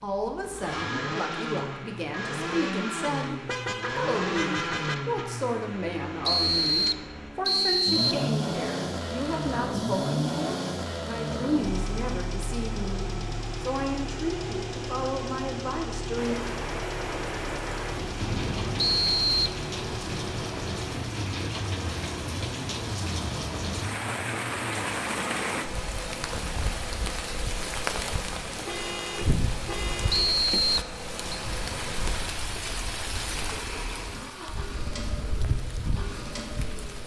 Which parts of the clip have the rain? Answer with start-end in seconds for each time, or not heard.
16.1-37.0.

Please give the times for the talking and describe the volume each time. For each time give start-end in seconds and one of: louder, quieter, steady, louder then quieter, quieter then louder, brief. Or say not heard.
0.0-16.4 steady.